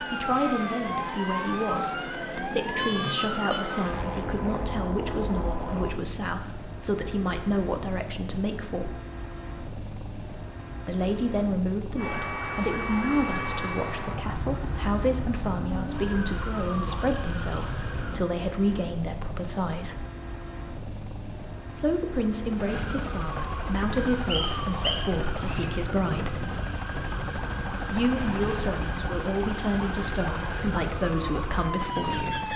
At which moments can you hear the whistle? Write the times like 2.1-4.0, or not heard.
24.2-25.6.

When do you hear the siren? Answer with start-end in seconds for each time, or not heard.
0.0-6.0, 11.9-18.2, 22.6-32.5.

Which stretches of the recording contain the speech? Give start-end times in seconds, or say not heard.
0.0-8.9, 10.8-20.1, 21.6-26.4, 27.9-32.5.